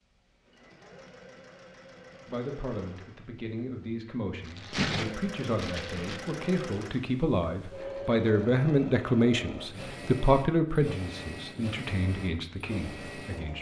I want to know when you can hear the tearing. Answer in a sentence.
You can hear the tearing from 4.5 to 6.2 s.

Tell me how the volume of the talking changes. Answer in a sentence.
The volume of the talking goes up, then down.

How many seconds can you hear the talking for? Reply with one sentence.
You can hear the talking for 11 seconds altogether.